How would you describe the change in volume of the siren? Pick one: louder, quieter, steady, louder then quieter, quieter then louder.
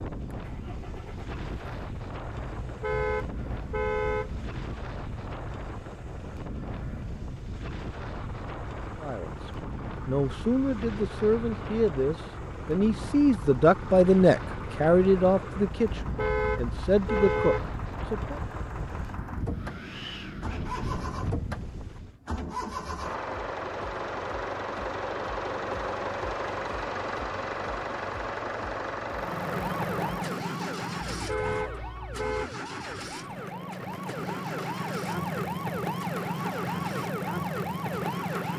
quieter then louder.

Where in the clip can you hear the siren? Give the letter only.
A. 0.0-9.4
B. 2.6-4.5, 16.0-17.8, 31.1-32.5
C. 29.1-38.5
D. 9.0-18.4
C.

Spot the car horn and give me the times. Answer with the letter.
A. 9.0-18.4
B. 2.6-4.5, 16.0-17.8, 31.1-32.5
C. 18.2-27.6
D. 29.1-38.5
B.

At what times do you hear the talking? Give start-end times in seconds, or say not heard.
9.0-18.4.